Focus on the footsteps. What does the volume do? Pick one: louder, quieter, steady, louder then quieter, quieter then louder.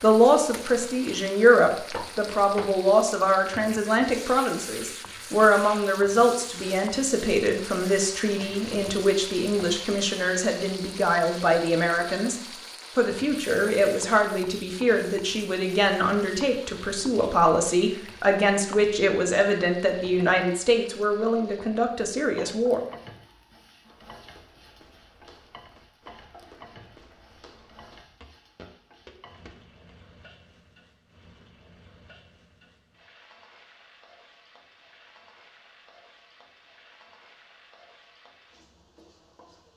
louder.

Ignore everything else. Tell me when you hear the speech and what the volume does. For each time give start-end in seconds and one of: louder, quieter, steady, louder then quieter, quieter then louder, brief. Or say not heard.
0.0-22.8 steady.